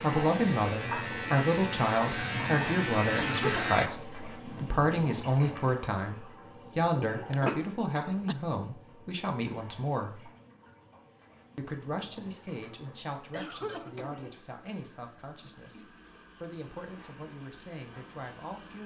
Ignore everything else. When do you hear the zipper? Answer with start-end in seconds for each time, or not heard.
not heard.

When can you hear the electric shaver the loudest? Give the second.
3 s.